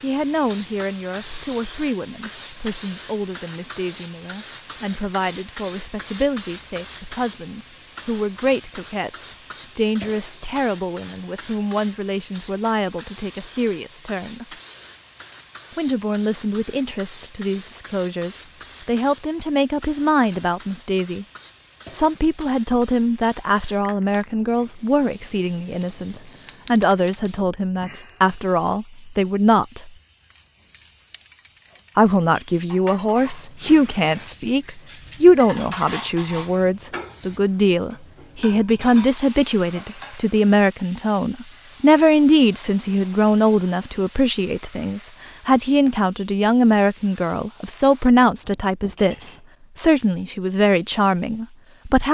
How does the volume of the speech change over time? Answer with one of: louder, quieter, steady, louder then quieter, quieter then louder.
louder.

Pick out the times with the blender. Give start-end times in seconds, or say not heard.
not heard.